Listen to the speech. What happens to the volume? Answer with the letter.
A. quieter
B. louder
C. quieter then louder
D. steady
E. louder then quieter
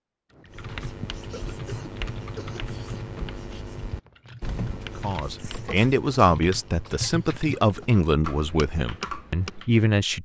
A.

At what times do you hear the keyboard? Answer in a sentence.
The keyboard can be heard from 0.3 to 9.7 s.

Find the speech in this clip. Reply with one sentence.
The speech can be heard from 5.0 to 10.1 s.